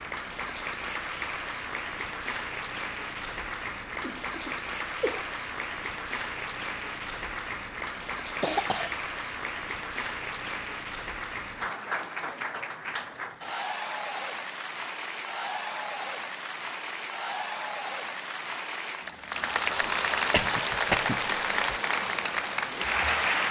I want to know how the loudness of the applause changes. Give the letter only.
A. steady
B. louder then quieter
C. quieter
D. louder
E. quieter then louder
D.